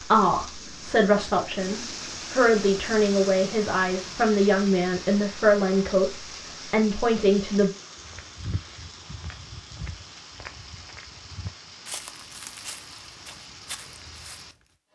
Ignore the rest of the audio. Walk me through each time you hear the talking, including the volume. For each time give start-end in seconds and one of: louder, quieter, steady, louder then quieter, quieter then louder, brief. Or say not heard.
0.0-7.7 steady.